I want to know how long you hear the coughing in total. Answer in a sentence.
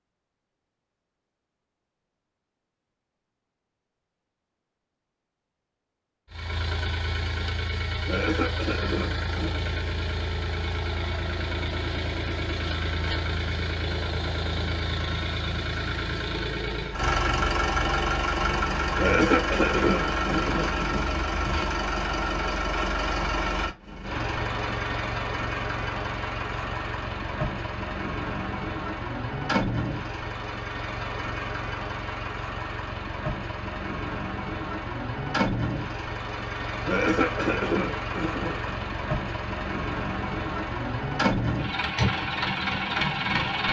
The coughing can be heard for 6 seconds in total.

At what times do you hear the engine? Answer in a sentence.
You can hear the engine from 6.3 to 43.6 s.